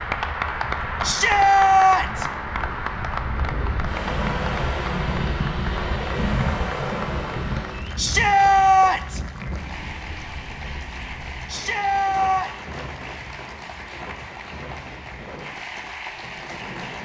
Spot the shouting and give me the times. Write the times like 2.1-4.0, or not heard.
1.0-2.2, 8.0-9.2, 11.4-12.5.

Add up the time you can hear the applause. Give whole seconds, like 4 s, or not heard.
17 s.